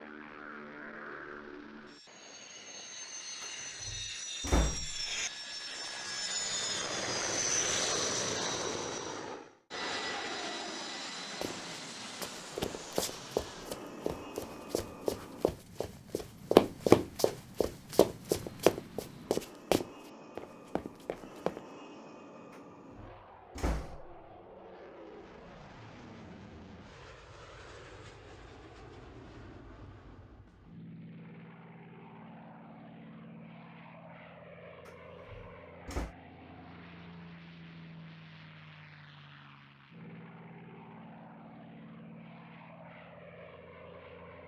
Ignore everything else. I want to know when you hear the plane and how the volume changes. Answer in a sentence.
The plane can be heard from 0.0 to 44.4 s, getting quieter.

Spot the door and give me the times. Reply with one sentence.
The door can be heard from 3.4 to 5.1 s, from 22.5 to 24.2 s and from 34.9 to 36.1 s.